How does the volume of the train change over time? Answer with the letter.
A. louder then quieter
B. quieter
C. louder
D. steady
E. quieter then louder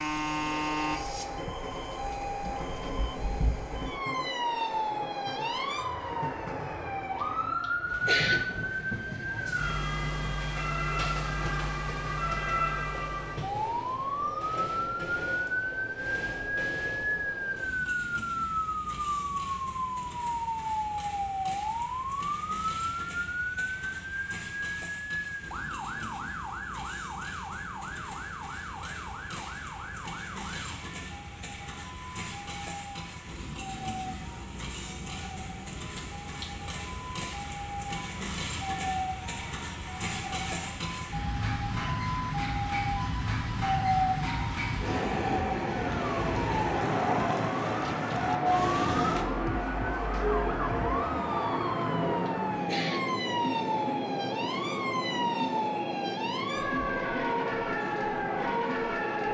C.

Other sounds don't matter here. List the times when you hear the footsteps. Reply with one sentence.
The footsteps can't be heard in this clip.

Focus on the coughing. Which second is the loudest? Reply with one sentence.
The volume of the coughing peaks at 8 seconds.